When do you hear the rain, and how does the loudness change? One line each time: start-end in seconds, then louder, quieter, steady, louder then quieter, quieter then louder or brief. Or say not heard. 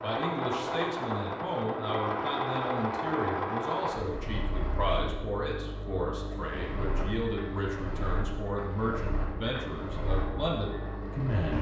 not heard.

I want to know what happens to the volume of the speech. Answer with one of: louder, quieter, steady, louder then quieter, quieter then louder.
steady.